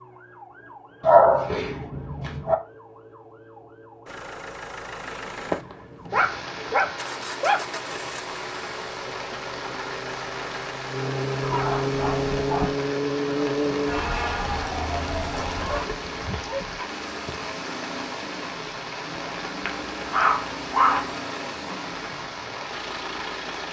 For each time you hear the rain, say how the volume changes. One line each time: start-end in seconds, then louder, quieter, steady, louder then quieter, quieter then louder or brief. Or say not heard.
6.0-23.6 steady.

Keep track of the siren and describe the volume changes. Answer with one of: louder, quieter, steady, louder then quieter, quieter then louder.
louder.